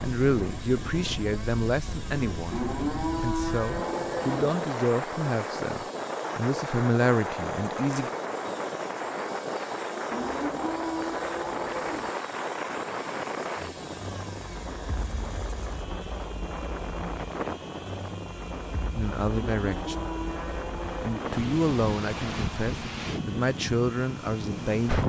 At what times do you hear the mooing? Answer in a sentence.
The mooing can be heard from 2.5 to 4.5 s, from 10.1 to 12.1 s and from 19.4 to 21.4 s.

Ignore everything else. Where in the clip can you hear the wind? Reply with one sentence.
You can hear the wind from 0.0 to 25.0 s.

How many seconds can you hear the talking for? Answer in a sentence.
You can hear the talking for 13 seconds altogether.